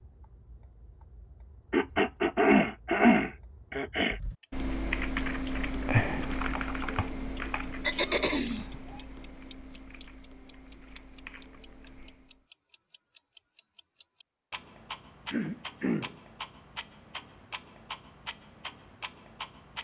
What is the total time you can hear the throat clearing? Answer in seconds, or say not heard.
4 s.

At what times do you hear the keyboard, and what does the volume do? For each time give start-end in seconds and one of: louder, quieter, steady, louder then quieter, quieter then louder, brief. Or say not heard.
4.1-12.4 quieter.